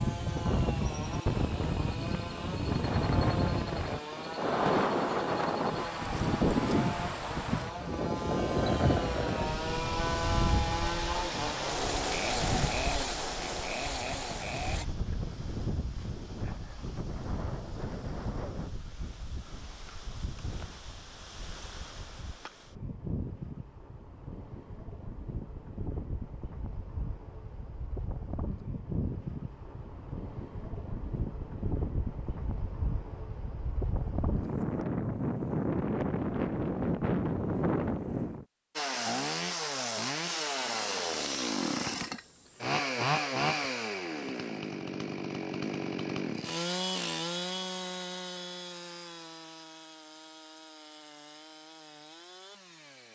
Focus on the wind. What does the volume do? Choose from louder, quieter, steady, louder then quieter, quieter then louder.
quieter then louder.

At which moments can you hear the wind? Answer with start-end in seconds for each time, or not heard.
0.0-38.5.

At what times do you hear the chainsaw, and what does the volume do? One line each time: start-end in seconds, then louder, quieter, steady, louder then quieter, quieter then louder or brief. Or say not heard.
0.0-14.8 louder
38.8-53.1 quieter.